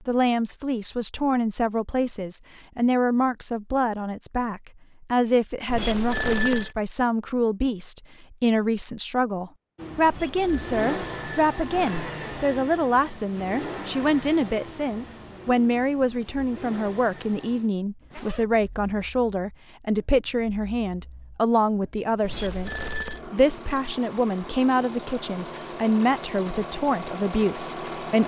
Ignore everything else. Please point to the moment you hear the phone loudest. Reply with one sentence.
The loudest moment of the phone is at 6 seconds.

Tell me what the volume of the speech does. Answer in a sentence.
The loudness of the speech stays about the same.